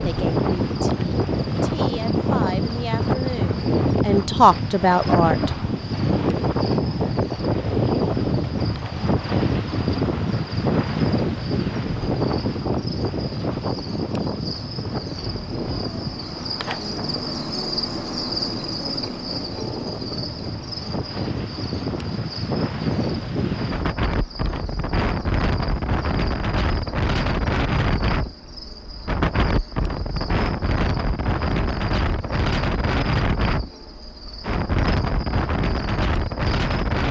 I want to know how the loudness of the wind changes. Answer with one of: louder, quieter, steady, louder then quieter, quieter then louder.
quieter then louder.